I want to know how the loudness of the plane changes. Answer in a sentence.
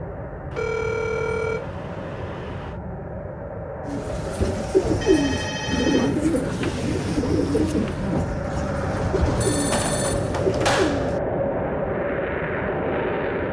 The volume of the plane goes up.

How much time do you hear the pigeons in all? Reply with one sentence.
You can hear the pigeons for 7 seconds altogether.